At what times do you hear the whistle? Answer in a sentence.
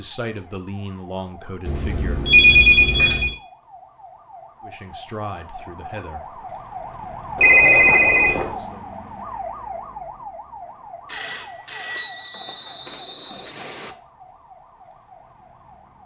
The whistle can be heard from 11.9 to 13.9 s.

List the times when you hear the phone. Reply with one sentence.
You can hear the phone from 1.6 to 3.4 s, from 7.3 to 8.6 s and from 11.1 to 13.1 s.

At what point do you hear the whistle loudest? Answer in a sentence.
The volume of the whistle peaks at 12 seconds.